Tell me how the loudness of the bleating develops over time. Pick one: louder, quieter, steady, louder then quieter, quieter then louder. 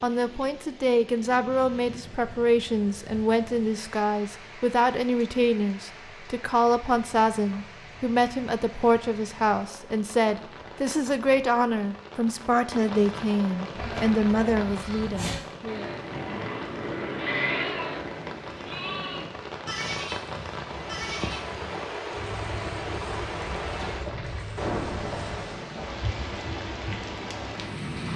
louder then quieter.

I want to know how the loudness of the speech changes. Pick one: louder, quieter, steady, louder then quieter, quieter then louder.
steady.